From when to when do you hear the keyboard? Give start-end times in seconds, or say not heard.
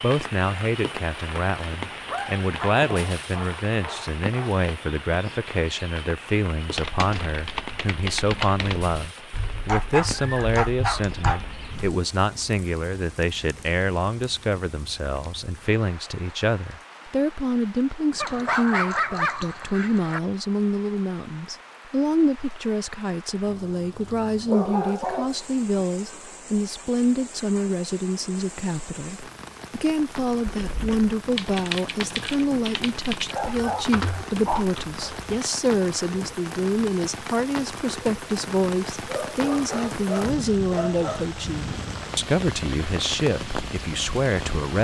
6.8-11.9, 30.4-35.4.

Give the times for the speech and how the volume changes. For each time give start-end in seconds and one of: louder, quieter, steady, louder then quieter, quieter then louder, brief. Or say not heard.
0.0-44.8 steady.